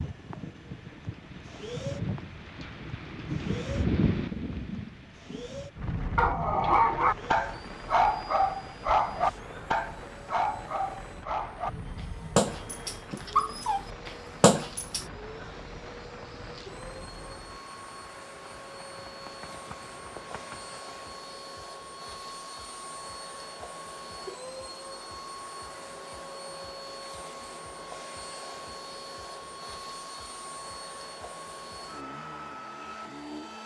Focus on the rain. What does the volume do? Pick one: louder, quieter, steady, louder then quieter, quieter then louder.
quieter.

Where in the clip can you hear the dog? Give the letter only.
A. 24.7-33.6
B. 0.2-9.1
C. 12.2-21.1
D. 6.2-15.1
D.